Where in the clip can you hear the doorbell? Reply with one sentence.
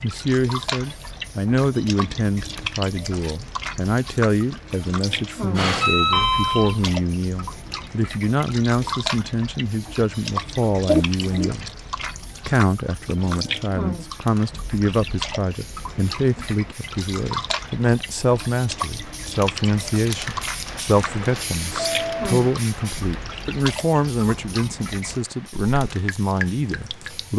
You can hear the doorbell from 5.5 to 6.8 s, from 10.8 to 11.5 s and from 21.8 to 22.4 s.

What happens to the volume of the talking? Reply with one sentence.
The volume of the talking stays about the same.